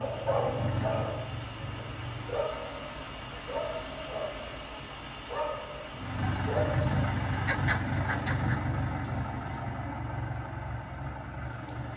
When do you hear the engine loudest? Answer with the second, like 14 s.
7 s.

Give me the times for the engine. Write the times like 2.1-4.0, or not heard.
0.0-2.5, 5.9-11.9.